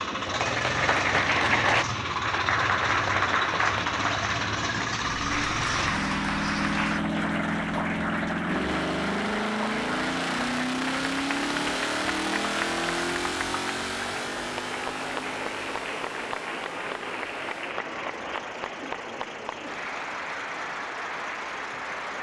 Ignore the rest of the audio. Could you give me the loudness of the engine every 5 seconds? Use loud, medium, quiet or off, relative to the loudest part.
loud, loud, loud, quiet, quiet.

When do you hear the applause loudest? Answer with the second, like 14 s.
1 s.